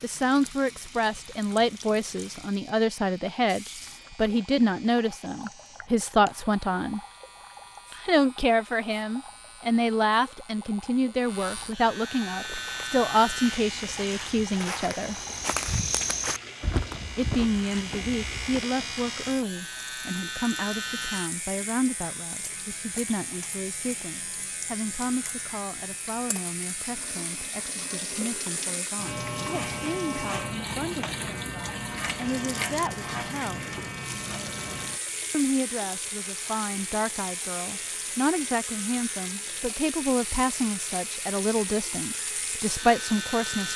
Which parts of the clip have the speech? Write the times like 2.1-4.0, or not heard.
0.0-7.0, 7.9-15.2, 17.1-33.8, 35.3-43.7.